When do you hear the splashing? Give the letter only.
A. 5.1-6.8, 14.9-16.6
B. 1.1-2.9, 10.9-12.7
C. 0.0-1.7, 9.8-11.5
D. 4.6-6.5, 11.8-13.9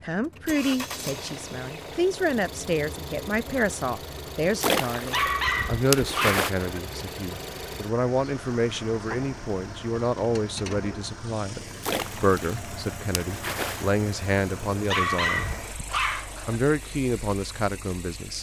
D.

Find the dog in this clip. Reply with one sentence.
You can hear the dog from 5.1 to 6.8 s and from 14.9 to 16.6 s.